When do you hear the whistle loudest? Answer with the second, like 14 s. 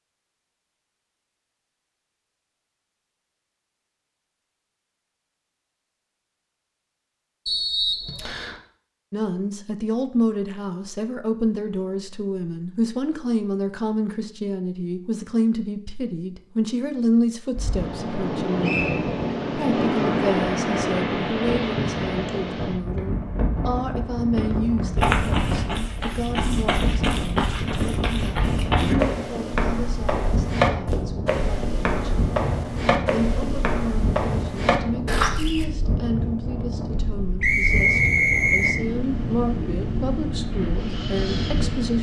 38 s.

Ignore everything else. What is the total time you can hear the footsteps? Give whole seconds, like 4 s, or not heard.
11 s.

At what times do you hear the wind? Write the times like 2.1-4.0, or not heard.
17.5-41.9.